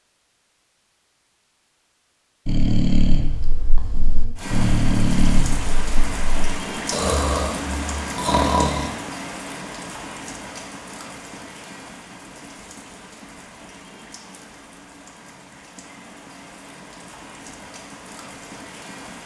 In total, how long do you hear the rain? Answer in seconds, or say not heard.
15 s.